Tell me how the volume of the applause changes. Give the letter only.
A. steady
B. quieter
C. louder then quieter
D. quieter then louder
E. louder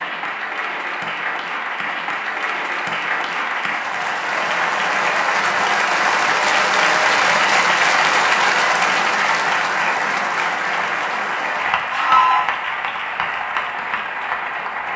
C.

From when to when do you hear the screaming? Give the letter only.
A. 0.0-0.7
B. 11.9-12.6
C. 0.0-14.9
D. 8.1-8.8
B.